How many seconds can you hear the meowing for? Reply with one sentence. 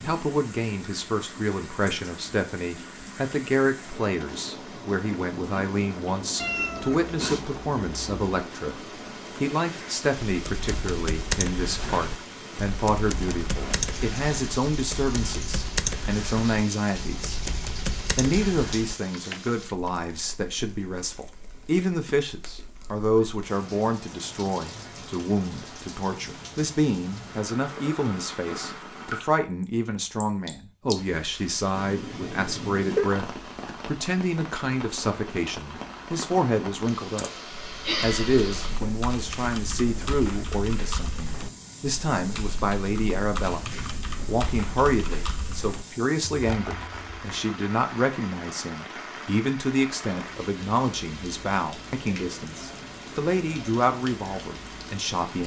You can hear the meowing for 4 seconds altogether.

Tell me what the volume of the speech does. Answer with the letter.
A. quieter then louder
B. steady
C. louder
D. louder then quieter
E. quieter
B.